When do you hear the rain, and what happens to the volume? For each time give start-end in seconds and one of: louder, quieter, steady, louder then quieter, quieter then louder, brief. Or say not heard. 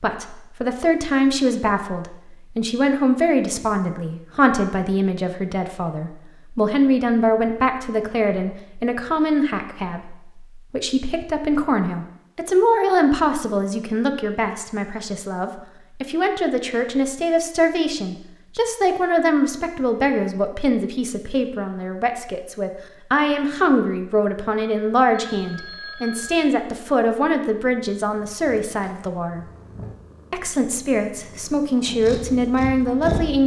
not heard.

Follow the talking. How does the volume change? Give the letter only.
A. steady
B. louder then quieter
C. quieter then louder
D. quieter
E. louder
A.